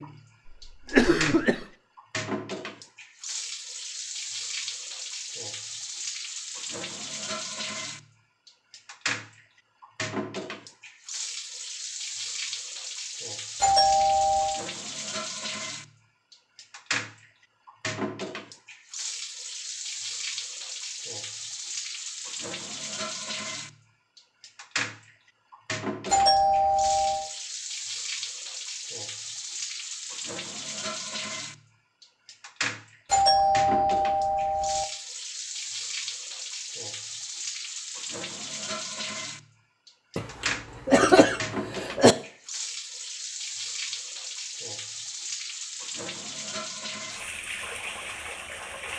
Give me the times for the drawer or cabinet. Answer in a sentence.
The drawer or cabinet can't be heard in this clip.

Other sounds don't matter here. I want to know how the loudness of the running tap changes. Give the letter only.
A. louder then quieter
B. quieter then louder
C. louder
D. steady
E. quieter
D.